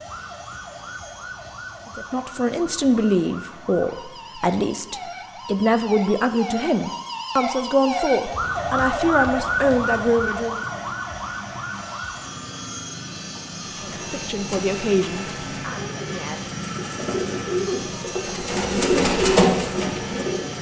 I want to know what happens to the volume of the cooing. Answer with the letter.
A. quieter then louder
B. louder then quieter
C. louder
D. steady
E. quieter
C.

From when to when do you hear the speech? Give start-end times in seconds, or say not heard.
1.9-10.7, 13.8-16.4.